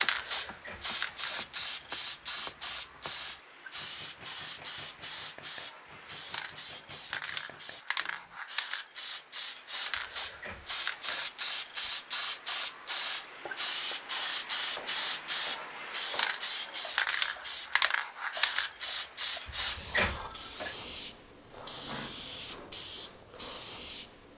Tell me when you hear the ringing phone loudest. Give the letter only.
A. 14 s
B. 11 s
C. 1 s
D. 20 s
D.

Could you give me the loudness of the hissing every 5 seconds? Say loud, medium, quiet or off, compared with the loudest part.
medium, medium, loud, loud, loud.